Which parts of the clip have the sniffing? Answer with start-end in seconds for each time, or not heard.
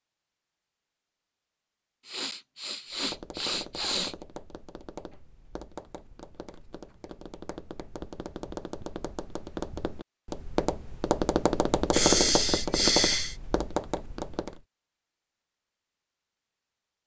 2.0-4.2, 11.9-13.3.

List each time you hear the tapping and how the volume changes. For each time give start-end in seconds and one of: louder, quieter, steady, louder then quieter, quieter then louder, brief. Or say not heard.
2.9-14.7 louder.